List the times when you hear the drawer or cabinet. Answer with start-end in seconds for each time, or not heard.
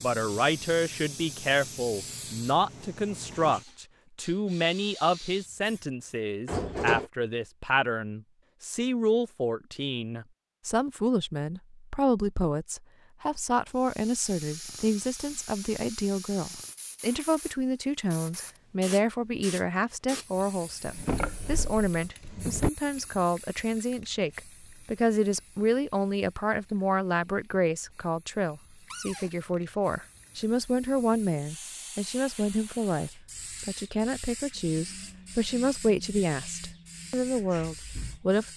6.5-7.1, 20.9-22.7, 28.9-29.3.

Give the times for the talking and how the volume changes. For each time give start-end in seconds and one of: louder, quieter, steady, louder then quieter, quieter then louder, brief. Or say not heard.
0.0-38.5 steady.